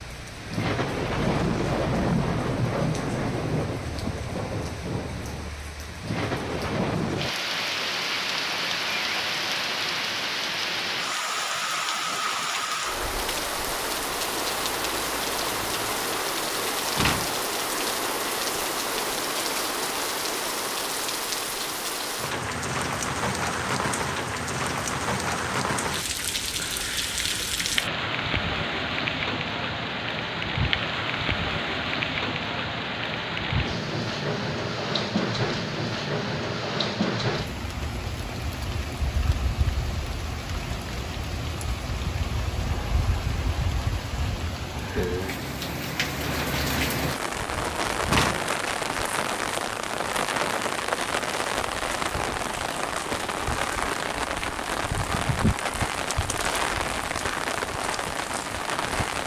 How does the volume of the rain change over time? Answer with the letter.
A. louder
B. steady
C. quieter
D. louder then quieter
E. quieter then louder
B.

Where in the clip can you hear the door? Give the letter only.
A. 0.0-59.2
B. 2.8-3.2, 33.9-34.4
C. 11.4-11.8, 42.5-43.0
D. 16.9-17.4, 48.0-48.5
D.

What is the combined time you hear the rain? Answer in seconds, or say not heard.
59 s.